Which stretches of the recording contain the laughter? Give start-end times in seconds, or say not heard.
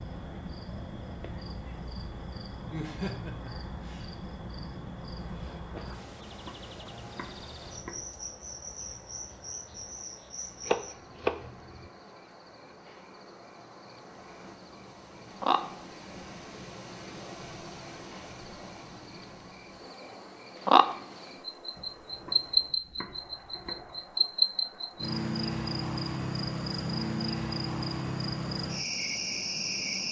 2.7-4.1.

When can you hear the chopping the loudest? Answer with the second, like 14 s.
11 s.